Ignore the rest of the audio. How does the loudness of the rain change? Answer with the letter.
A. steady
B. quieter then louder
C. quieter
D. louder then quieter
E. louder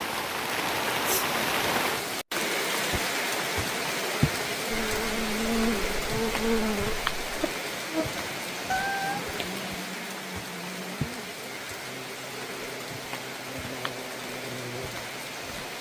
C.